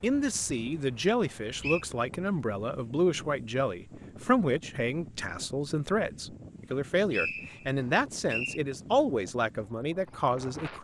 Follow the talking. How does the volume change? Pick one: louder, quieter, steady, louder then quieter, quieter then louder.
steady.